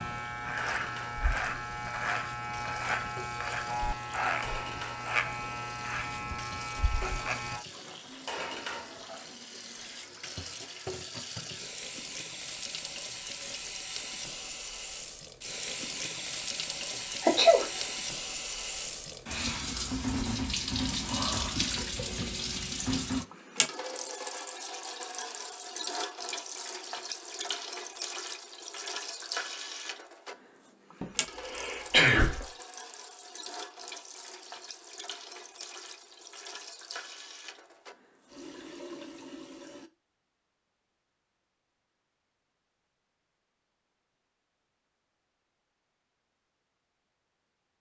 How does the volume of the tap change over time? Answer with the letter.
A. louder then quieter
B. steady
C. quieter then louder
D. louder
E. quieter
A.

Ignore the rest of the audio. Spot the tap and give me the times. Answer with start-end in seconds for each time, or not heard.
0.0-39.9.